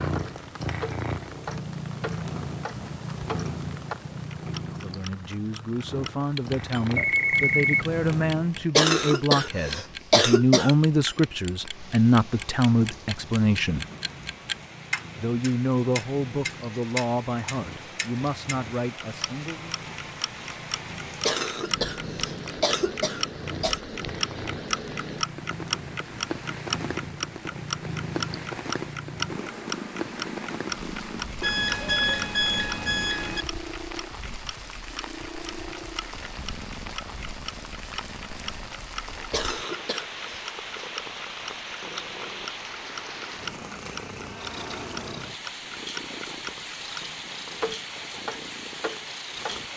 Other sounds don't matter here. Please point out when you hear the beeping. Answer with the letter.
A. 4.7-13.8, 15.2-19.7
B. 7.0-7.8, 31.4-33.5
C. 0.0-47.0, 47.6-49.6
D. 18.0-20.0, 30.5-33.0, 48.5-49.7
B.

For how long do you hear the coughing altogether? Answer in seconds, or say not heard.
6 s.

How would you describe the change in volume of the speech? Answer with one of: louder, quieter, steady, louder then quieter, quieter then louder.
louder then quieter.